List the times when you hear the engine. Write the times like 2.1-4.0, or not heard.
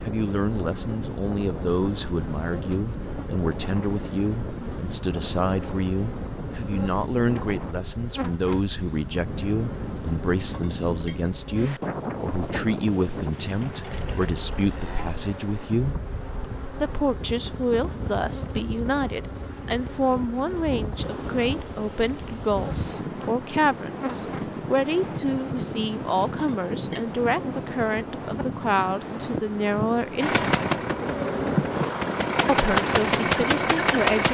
30.2-34.2.